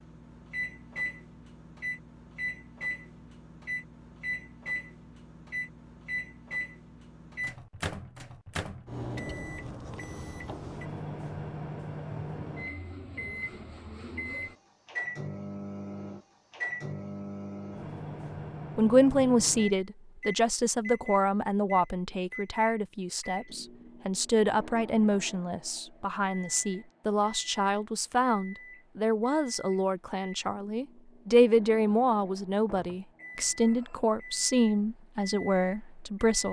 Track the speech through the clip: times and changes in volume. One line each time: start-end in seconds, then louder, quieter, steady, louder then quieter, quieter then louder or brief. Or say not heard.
18.8-36.4 steady.